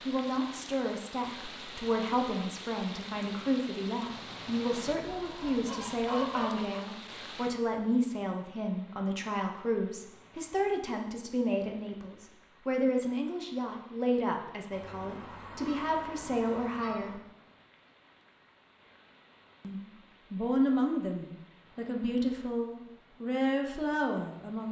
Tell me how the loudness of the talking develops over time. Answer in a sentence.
The loudness of the talking stays about the same.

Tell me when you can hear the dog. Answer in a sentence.
You can't hear the dog here.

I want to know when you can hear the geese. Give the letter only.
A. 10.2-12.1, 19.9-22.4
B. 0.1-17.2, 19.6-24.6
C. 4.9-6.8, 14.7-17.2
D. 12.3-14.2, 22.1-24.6
C.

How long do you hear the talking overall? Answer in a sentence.
The talking can be heard for 22 seconds in total.